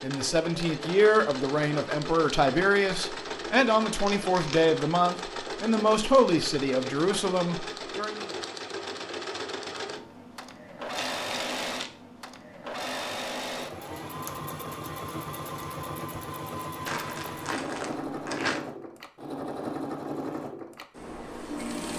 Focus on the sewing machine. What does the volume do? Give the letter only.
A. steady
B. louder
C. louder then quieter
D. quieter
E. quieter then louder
A.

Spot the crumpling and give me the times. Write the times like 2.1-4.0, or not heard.
4.0-4.8, 10.9-11.9, 16.9-18.6.